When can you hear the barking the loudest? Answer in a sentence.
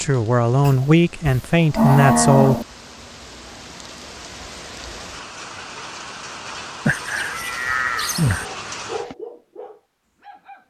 The volume of the barking peaks at 9 seconds.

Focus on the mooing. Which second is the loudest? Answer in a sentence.
The loudest moment of the mooing is at 2 seconds.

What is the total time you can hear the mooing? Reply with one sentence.
The mooing can be heard for 4 seconds in total.